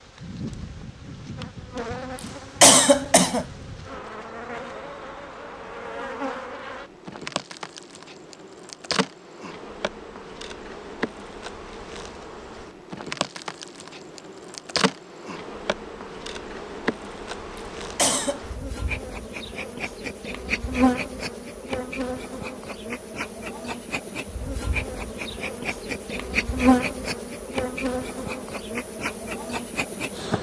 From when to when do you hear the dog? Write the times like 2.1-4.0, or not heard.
not heard.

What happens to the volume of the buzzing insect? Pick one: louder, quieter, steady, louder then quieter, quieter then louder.
louder.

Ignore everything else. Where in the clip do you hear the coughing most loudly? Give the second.
3 s.